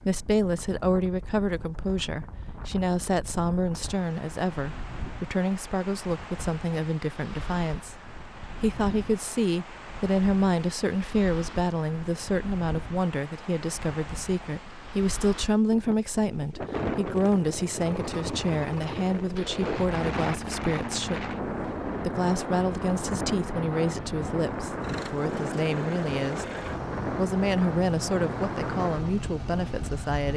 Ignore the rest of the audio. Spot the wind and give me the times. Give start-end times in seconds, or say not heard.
0.0-30.3.